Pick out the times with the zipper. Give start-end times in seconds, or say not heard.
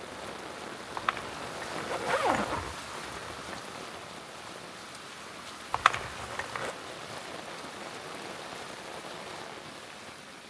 0.9-3.6, 5.7-6.8.